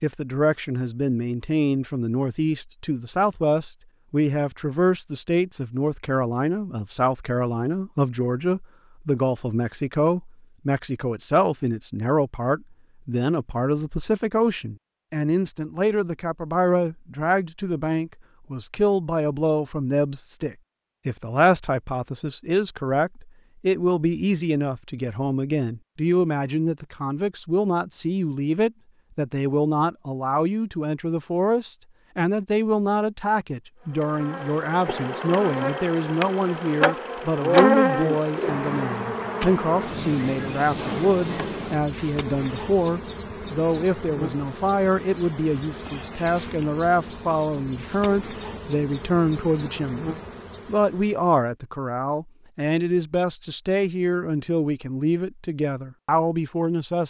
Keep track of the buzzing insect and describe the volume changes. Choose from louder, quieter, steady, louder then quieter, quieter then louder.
quieter.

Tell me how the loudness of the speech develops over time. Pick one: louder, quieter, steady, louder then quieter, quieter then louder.
steady.